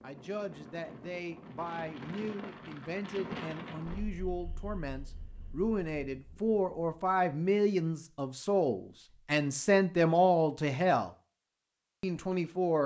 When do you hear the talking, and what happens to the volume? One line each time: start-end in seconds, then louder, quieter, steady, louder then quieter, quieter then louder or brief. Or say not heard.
0.0-11.1 louder
12.0-12.8 brief.